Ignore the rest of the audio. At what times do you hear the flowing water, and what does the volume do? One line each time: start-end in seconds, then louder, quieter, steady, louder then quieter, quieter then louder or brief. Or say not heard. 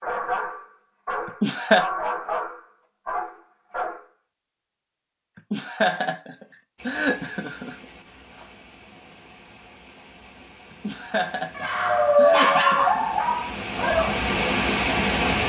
6.8-15.4 louder.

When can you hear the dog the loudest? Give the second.
12 s.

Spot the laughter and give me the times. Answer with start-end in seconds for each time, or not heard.
1.2-1.9, 5.5-7.8, 10.8-13.1.